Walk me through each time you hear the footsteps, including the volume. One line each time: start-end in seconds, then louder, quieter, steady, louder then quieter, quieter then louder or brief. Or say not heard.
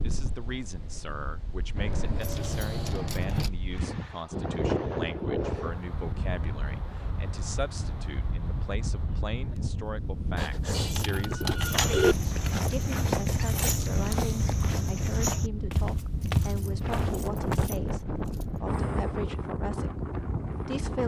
11.3-17.7 steady.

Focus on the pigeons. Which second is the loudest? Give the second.
12 s.